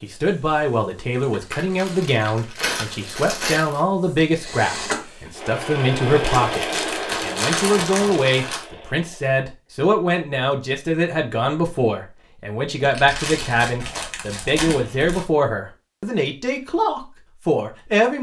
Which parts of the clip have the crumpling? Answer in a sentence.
The crumpling can be heard from 1.5 to 3.8 s, from 6.2 to 8.7 s and from 12.8 to 15.2 s.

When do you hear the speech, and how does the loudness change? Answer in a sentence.
You can hear the speech from 0.0 to 18.1 s, at a steady volume.